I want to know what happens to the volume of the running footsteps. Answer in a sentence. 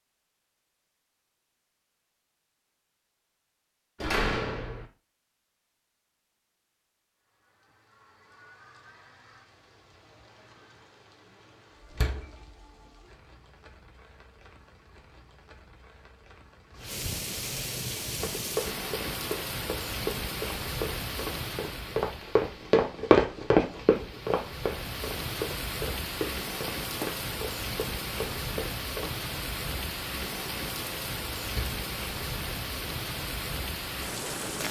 The loudness of the running footsteps goes up, then down.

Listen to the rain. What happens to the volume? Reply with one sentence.
The loudness of the rain goes up.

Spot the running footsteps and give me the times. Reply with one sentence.
The running footsteps can be heard from 18.1 to 29.1 s.